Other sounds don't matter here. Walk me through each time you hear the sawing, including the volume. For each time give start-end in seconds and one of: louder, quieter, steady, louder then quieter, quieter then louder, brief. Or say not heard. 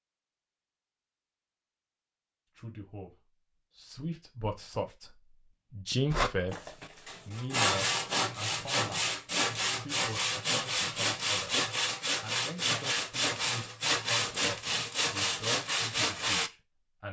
6.1-16.5 steady.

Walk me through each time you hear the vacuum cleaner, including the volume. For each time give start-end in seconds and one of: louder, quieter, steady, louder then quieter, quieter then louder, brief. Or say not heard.
not heard.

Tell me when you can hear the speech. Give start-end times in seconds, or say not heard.
2.5-9.2, 9.8-17.0.